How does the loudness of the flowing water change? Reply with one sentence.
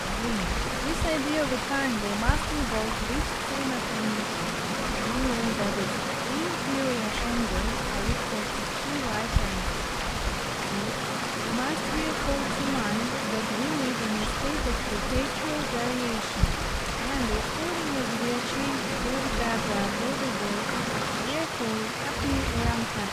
The loudness of the flowing water stays about the same.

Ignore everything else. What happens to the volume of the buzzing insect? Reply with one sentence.
The loudness of the buzzing insect stays about the same.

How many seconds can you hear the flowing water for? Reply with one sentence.
The flowing water can be heard for 23 seconds in total.